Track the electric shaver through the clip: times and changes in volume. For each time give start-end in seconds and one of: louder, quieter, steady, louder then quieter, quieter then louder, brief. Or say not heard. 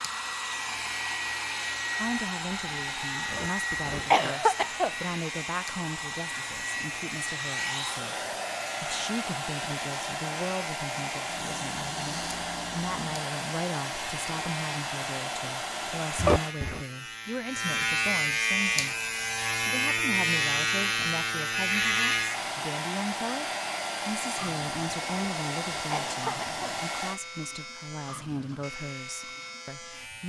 0.0-30.2 louder then quieter.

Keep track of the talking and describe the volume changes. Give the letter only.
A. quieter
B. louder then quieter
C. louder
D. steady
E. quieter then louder
D.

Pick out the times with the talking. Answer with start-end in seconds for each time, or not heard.
1.9-23.4, 24.1-30.2.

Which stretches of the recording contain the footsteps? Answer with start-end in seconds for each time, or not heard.
not heard.